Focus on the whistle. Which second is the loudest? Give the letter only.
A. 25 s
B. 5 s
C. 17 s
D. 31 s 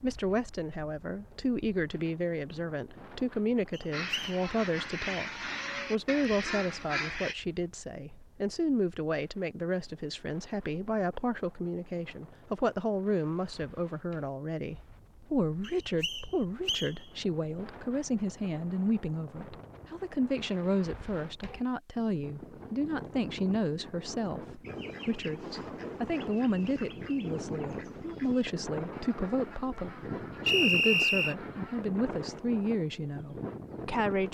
D.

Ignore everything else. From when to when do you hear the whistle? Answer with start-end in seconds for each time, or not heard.
3.7-4.3, 15.6-16.9, 30.4-31.4.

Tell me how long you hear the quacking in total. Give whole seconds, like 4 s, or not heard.
11 s.